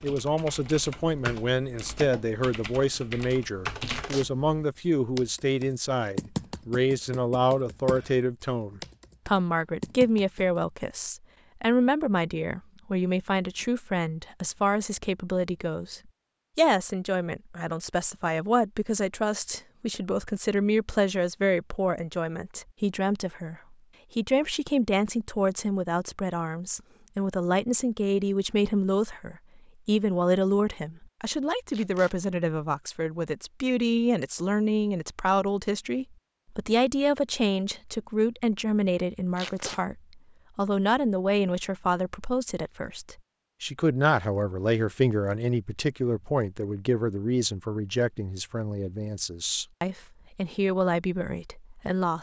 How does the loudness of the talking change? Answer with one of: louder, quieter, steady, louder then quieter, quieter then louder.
steady.